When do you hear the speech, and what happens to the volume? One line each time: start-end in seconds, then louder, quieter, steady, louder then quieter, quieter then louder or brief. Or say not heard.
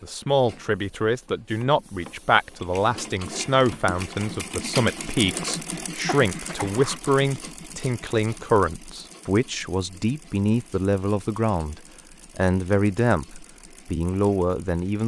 0.0-15.0 steady.